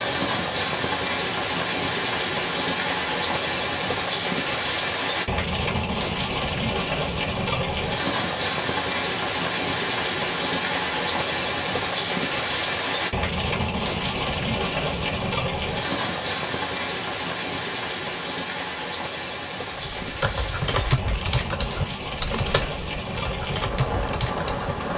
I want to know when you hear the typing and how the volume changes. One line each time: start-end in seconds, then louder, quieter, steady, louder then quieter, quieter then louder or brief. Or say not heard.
19.8-24.7 quieter then louder.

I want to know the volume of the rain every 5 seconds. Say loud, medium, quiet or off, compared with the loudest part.
loud, loud, loud, loud, medium.